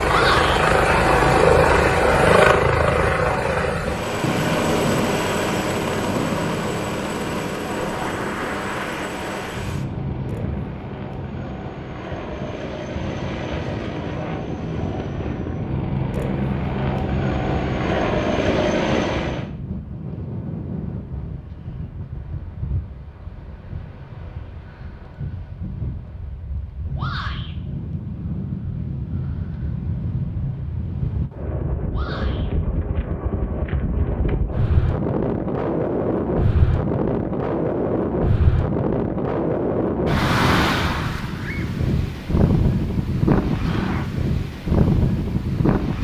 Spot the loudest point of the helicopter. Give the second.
2 s.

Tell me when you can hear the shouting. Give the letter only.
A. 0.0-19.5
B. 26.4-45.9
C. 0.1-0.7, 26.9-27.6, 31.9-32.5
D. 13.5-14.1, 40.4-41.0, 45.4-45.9
C.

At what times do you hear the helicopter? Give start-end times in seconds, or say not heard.
0.0-19.5.